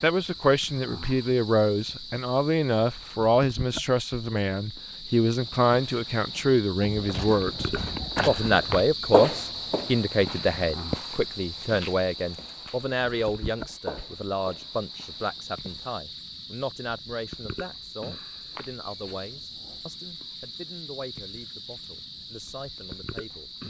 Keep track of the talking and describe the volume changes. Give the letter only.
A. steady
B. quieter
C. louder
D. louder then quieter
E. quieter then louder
B.